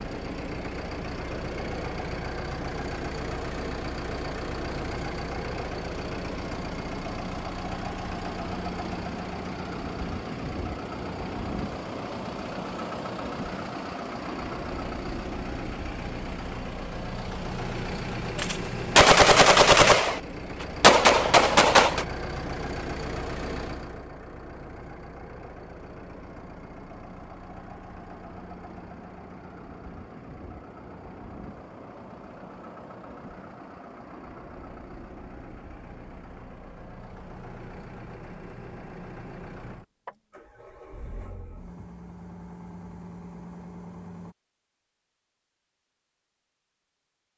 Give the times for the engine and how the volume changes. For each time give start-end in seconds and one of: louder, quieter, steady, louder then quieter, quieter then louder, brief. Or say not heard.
0.0-44.4 quieter.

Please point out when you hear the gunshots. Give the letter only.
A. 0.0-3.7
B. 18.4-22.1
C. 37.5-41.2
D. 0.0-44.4
B.